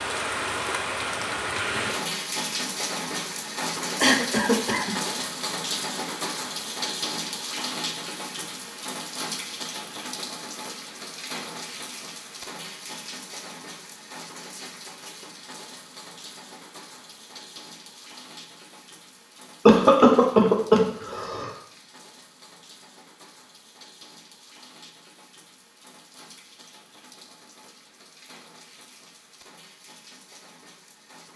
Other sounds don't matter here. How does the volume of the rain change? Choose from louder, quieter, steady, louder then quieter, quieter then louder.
quieter.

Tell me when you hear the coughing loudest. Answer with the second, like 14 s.
20 s.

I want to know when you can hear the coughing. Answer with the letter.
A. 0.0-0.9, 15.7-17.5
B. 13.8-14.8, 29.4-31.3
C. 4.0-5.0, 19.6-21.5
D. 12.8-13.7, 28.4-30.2
C.